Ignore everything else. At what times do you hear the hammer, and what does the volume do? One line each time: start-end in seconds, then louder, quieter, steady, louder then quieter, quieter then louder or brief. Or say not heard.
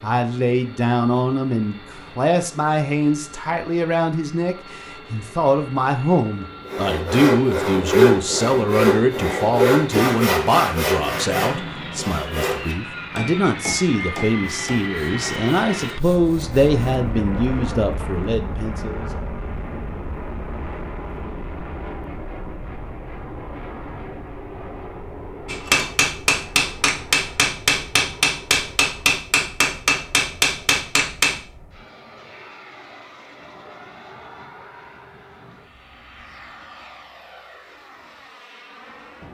25.4-31.4 steady.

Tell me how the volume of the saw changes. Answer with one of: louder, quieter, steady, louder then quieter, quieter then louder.
quieter.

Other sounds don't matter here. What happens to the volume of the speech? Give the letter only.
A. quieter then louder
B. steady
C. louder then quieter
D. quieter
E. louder
B.